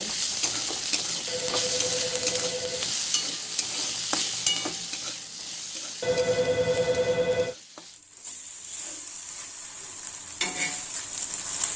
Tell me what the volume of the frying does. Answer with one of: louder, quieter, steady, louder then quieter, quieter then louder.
quieter then louder.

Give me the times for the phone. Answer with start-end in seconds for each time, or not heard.
1.2-3.0, 6.0-7.5.